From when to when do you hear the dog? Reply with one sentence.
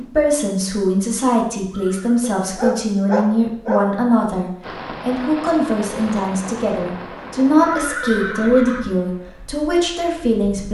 You can hear the dog from 2.2 to 3.9 s.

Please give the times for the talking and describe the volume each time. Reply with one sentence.
You can hear the talking from 0.0 to 10.6 s, at a steady volume.